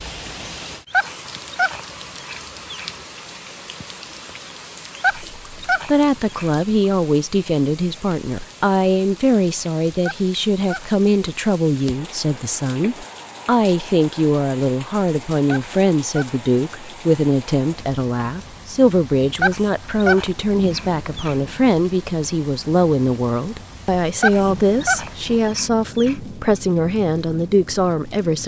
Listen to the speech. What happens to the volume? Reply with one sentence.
The loudness of the speech stays about the same.